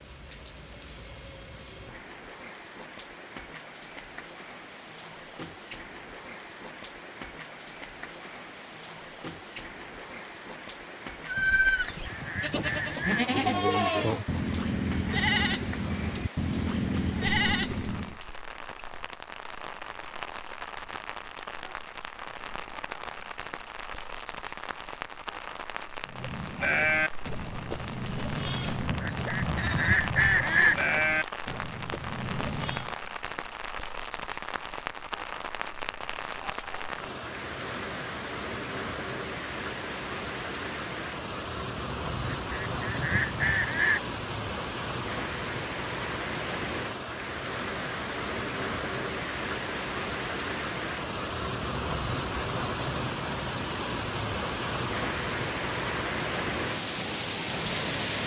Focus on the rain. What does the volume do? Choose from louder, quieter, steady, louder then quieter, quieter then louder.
louder.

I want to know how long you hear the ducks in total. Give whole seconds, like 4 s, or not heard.
6 s.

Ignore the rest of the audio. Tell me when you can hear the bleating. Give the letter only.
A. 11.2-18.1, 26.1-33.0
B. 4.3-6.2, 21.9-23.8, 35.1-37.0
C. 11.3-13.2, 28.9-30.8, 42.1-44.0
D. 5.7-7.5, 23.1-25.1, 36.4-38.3
A.